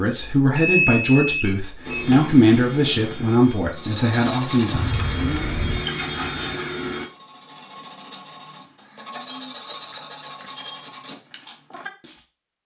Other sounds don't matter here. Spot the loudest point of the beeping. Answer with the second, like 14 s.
1 s.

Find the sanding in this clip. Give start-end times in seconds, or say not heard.
3.8-12.2.